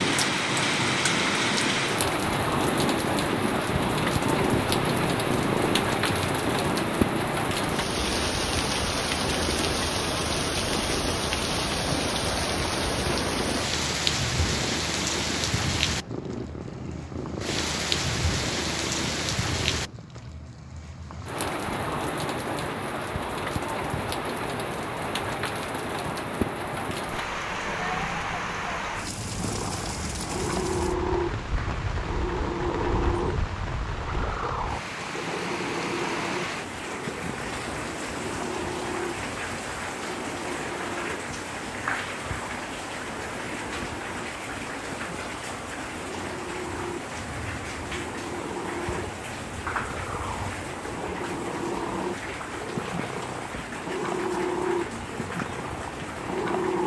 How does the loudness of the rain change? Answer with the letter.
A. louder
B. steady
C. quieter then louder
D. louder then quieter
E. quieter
E.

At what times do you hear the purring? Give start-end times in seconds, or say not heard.
0.0-19.9, 29.2-56.8.